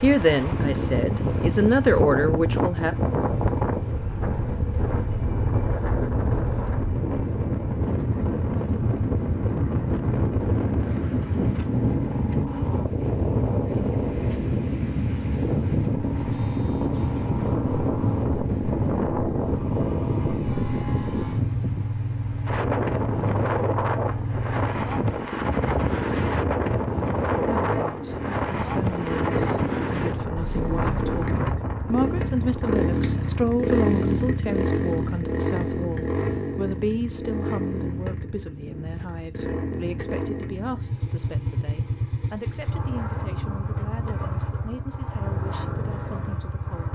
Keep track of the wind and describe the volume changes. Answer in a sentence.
The loudness of the wind stays about the same.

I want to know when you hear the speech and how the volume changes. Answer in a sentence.
You can hear the speech briefly from 0.0 to 3.0 s; and from 27.4 to 46.9 s, getting louder then quieter.